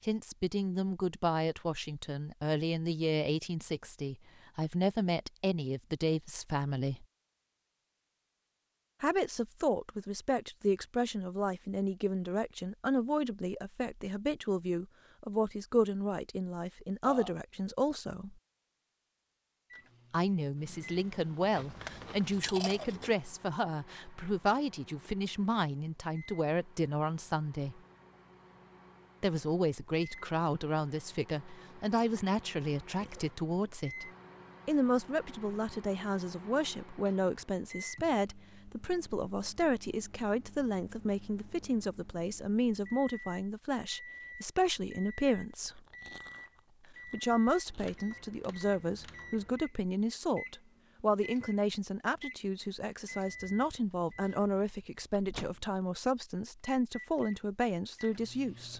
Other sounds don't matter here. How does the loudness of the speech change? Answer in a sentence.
The volume of the speech stays about the same.